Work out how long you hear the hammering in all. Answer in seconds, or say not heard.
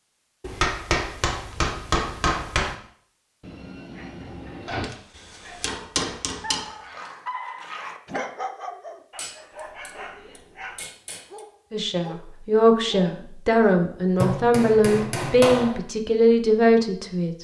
8 s.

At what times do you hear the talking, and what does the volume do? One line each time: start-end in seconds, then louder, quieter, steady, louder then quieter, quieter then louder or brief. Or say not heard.
11.7-17.4 steady.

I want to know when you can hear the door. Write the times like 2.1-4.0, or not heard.
3.4-4.9.